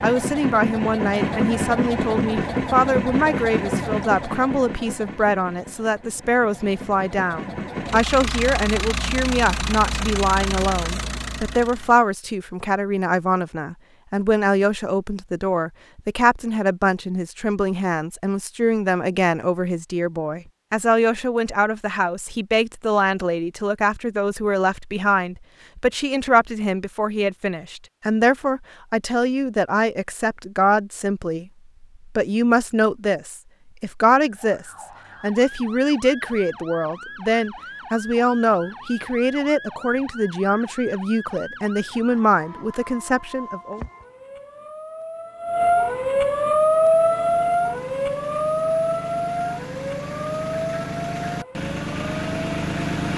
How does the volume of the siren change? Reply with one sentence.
The loudness of the siren goes up, then down.